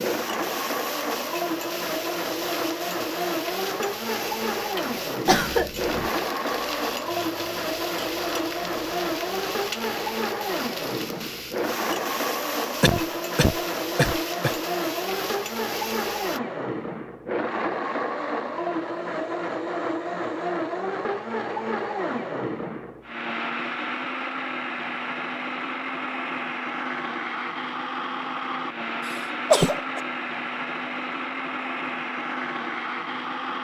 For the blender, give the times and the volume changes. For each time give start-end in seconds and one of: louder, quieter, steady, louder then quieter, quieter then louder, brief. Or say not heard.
0.0-33.5 steady.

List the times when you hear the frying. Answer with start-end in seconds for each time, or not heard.
0.0-16.4.